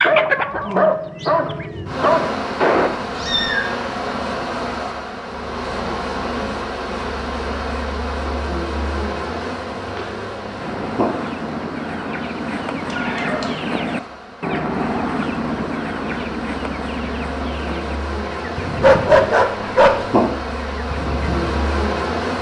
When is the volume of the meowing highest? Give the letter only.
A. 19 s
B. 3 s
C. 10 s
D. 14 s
B.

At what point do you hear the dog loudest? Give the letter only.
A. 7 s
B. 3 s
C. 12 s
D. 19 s
D.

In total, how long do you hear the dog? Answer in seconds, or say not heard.
4 s.